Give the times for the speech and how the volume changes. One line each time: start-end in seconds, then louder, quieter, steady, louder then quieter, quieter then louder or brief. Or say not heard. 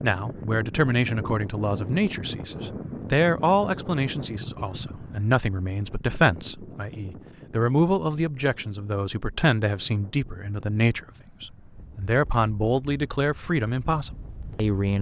0.0-14.9 steady.